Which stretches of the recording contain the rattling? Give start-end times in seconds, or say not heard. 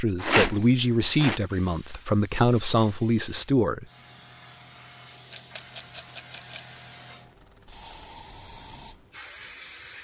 0.1-1.4, 5.3-6.8.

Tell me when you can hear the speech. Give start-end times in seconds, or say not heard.
0.0-3.9.